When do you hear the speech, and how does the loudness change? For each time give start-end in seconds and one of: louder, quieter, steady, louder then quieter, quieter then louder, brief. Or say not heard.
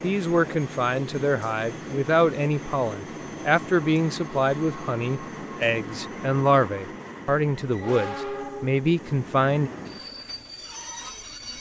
0.0-9.7 steady.